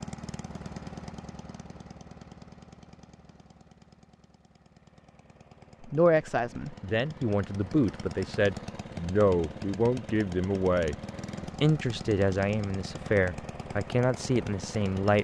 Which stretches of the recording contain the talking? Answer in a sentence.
You can hear the talking from 5.8 to 10.9 s and from 11.6 to 15.1 s.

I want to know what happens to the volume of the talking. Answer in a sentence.
The volume of the talking stays about the same.